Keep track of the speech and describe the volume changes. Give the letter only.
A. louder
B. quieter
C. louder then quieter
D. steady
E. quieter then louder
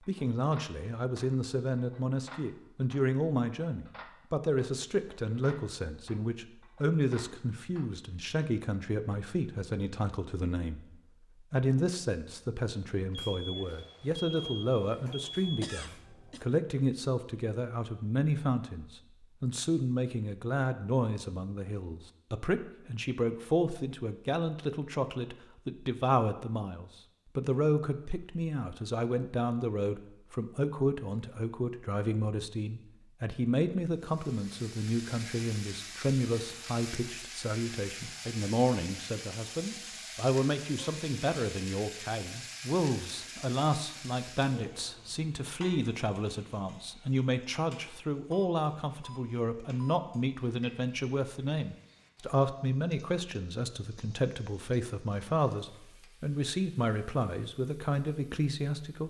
D.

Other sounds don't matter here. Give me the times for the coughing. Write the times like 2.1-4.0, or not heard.
15.6-16.4.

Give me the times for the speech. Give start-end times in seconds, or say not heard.
0.1-59.0.